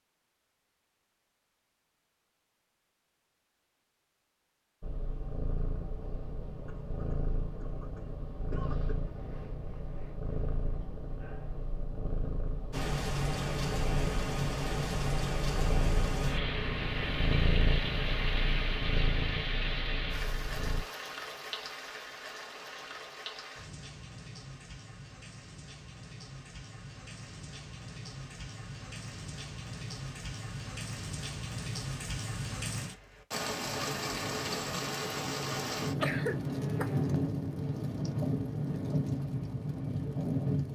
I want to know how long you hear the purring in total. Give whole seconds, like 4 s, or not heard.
16 s.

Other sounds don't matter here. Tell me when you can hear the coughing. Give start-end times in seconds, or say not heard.
6.7-8.9, 36.0-37.3.